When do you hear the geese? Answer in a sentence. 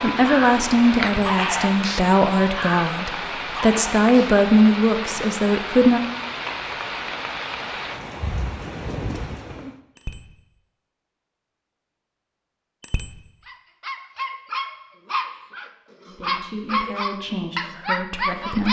You can't hear the geese here.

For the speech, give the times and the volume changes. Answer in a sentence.
The speech can be heard from 0.0 to 6.0 s, getting quieter then louder; and briefly from 16.1 to 18.6 s.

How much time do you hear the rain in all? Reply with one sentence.
You can hear the rain for 10 seconds altogether.